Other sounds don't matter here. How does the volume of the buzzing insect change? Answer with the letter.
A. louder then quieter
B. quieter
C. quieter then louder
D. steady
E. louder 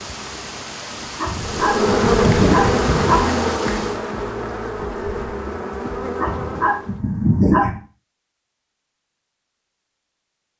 B.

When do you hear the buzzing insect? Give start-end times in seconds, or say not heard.
1.4-7.0.